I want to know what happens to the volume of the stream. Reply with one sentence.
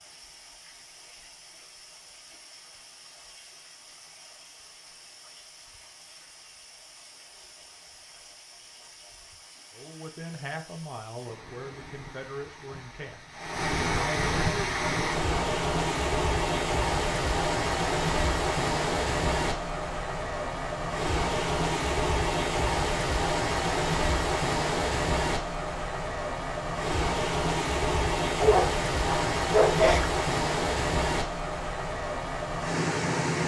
The volume of the stream goes up.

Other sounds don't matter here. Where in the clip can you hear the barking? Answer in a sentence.
You can hear the barking from 28.4 to 30.1 s.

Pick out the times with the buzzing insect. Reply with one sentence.
The buzzing insect can't be heard in this clip.